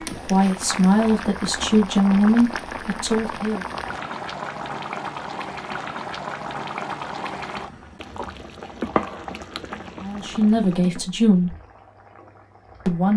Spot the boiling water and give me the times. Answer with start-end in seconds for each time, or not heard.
0.0-13.1.